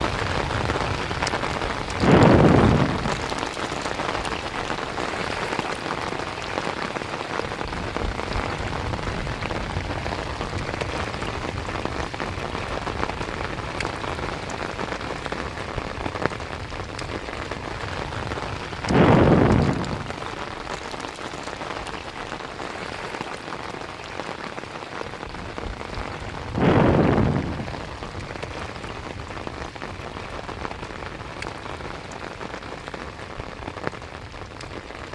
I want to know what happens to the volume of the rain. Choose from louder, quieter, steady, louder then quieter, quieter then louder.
quieter.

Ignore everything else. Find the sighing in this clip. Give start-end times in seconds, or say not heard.
2.0-3.3, 18.9-20.1, 26.5-27.9.